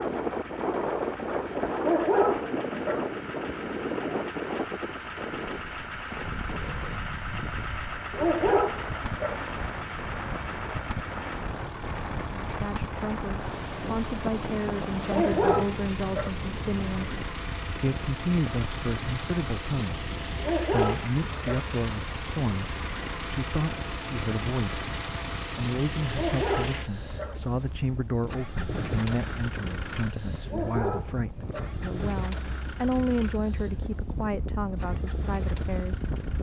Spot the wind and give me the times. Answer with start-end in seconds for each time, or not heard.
0.0-36.3.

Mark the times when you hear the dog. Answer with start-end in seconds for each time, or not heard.
1.8-3.0, 8.1-9.3, 15.1-16.3, 20.4-21.6, 26.1-27.4, 30.4-31.7.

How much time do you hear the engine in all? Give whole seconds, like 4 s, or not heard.
36 s.